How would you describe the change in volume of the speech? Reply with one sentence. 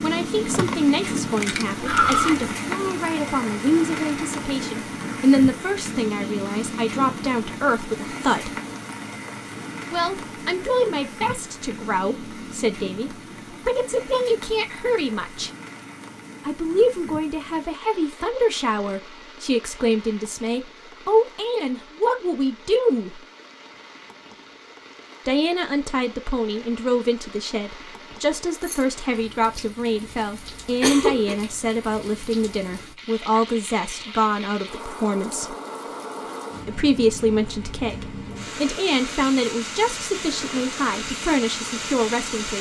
The loudness of the speech stays about the same.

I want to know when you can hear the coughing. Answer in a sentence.
The coughing can be heard from 1.9 to 2.5 s and from 30.4 to 31.4 s.